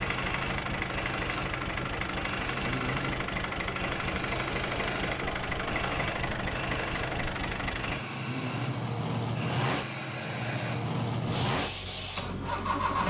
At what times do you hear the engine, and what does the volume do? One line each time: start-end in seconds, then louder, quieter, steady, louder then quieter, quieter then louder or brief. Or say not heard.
0.0-13.0 steady.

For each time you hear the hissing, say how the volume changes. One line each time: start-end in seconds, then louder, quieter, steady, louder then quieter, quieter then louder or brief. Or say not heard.
0.0-12.8 steady.